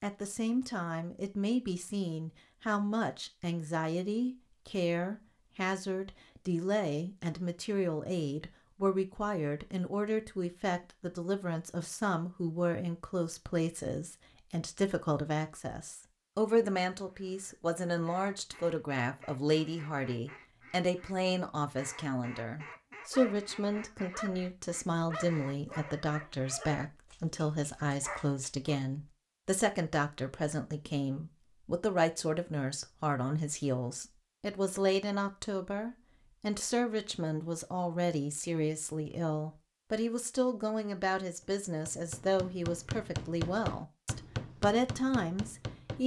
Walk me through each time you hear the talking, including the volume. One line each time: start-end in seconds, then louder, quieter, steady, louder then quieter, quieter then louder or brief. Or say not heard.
0.0-46.0 steady.